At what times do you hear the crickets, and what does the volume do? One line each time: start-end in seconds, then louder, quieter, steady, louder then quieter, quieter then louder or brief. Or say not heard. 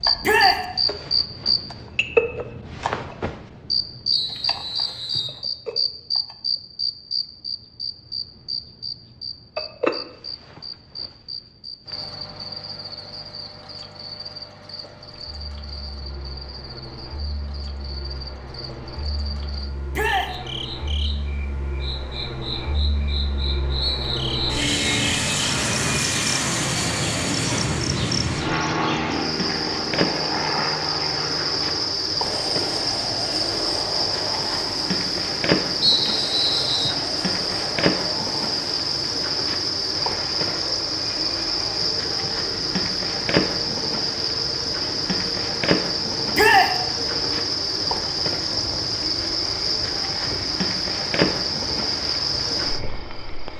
0.0-53.5 quieter then louder.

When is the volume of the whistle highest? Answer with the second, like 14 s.
36 s.